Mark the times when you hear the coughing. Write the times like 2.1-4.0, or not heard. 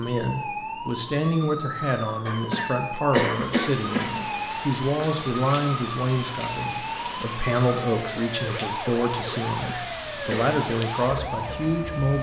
2.2-4.2, 9.6-10.6.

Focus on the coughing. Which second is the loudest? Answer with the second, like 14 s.
3 s.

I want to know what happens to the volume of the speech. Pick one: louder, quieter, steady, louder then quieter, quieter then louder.
steady.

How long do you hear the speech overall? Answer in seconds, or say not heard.
12 s.